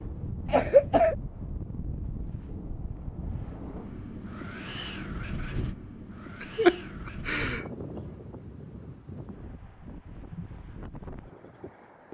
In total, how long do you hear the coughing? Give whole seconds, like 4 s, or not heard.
2 s.